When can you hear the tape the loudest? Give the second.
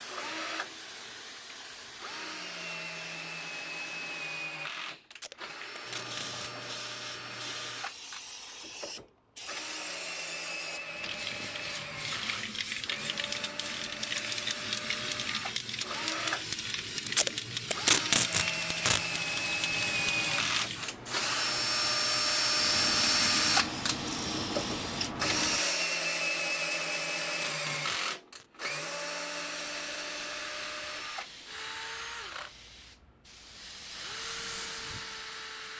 18 s.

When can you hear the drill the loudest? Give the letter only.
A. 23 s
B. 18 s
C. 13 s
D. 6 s
A.